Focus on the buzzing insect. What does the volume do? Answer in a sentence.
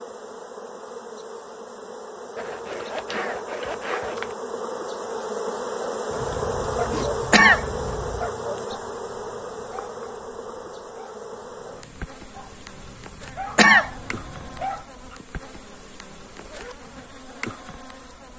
The loudness of the buzzing insect goes up, then down.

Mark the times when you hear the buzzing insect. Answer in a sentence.
You can hear the buzzing insect from 0.0 to 18.3 s.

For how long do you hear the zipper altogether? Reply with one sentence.
You can hear the zipper for 5 seconds altogether.